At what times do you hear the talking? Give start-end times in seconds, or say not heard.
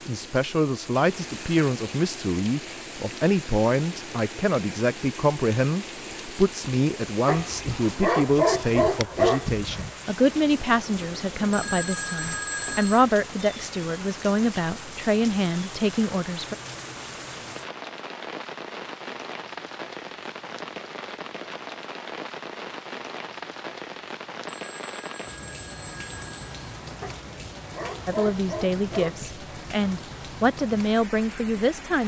0.1-16.6, 28.1-32.0.